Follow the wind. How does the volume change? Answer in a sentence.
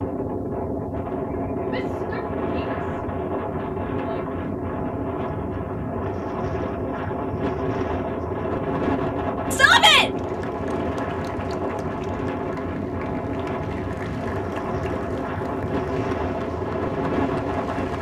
The loudness of the wind stays about the same.